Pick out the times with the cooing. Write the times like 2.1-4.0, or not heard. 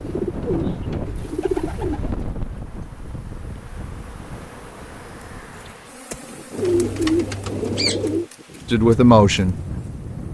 0.0-2.2, 6.5-8.2.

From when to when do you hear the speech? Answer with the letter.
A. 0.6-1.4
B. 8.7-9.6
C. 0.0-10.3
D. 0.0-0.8
B.